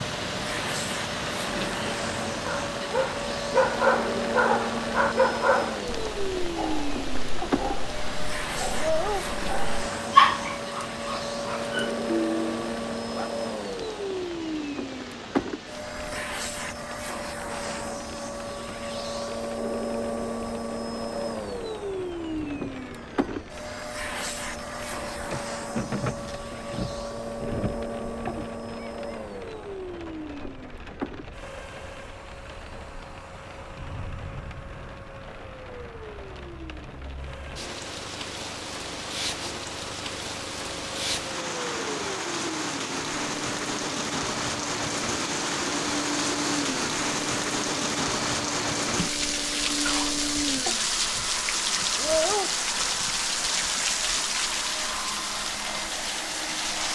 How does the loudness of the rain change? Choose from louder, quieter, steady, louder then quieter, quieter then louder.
quieter then louder.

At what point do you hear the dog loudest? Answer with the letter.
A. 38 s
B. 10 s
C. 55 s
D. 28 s
B.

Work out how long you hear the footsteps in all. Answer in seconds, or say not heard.
not heard.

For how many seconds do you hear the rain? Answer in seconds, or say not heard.
57 s.